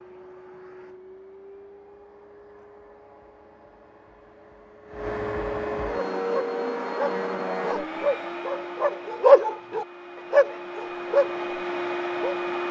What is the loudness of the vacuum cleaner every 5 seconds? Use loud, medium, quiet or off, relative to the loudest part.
quiet, loud, loud.